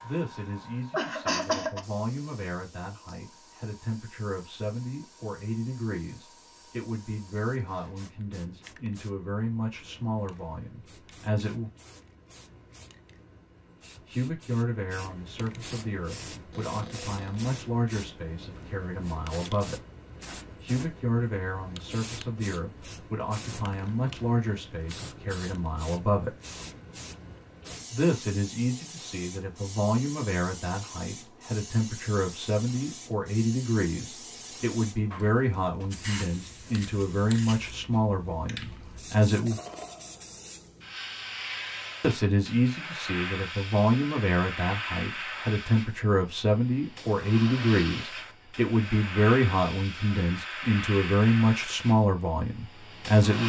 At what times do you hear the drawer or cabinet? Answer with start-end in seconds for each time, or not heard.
16.5-17.4.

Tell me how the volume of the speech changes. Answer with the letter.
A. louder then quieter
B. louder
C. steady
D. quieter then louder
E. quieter
B.